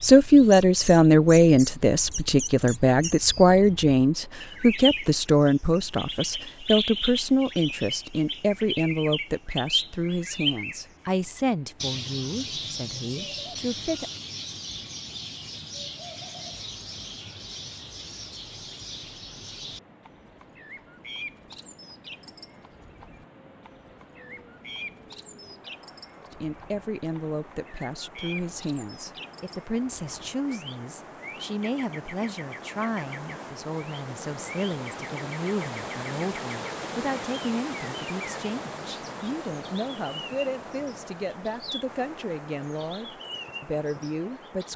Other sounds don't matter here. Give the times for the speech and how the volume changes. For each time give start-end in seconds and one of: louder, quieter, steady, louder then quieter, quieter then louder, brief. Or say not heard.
0.0-14.1 quieter
26.3-44.7 steady.